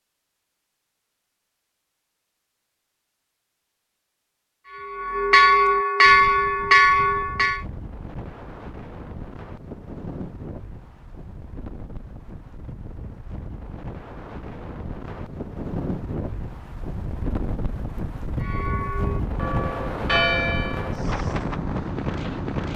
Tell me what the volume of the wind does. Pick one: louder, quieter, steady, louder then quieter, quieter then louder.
louder.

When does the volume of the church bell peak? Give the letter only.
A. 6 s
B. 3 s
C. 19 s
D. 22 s
A.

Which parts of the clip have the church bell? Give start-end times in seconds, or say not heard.
4.7-7.6, 18.4-21.0.